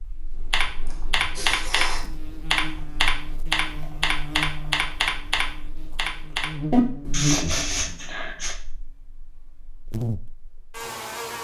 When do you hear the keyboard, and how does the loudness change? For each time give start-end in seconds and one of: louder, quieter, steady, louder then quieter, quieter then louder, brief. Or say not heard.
0.3-8.0 steady.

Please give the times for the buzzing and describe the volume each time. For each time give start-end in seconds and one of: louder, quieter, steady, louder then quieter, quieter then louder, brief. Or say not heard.
0.0-11.3 louder then quieter.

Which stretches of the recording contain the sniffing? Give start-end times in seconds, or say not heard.
0.8-2.1, 7.1-8.6.